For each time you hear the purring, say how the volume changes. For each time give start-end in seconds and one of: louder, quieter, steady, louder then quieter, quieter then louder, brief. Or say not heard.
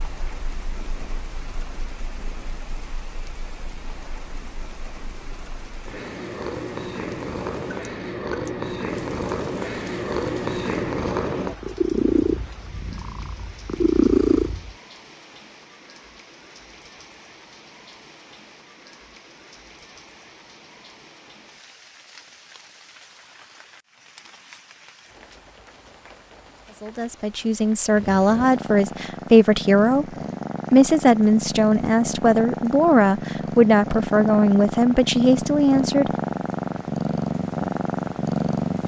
0.0-14.8 louder
27.9-38.8 louder.